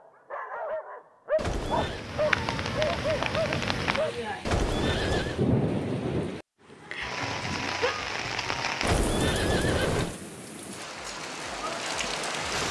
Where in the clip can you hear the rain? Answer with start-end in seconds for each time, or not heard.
1.8-12.6.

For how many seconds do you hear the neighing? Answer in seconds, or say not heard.
3 s.